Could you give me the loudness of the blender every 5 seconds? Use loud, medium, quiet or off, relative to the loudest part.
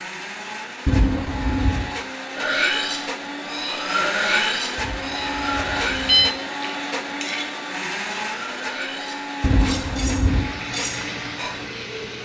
loud, loud, medium.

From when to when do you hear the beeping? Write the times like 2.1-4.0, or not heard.
0.8-1.9, 4.8-6.3, 9.4-10.5.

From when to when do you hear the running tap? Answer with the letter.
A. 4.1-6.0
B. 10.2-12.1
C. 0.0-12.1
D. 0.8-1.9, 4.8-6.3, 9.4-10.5
B.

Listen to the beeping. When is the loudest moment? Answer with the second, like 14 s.
6 s.